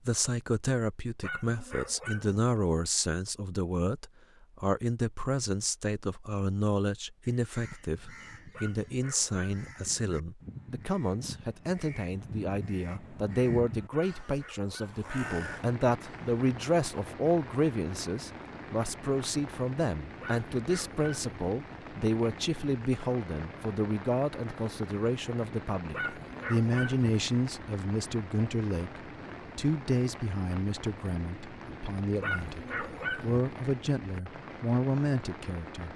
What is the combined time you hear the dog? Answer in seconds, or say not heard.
7 s.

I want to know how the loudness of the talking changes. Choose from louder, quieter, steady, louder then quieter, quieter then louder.
steady.